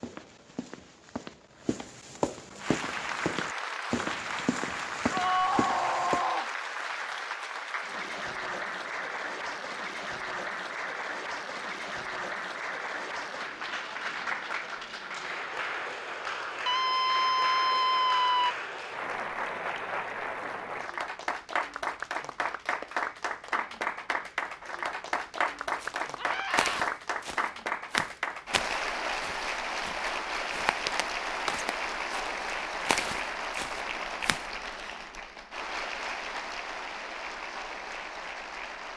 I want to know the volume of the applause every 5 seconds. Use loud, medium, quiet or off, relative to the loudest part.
loud, loud, loud, loud, loud, loud, loud, medium.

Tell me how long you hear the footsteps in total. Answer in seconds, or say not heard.
15 s.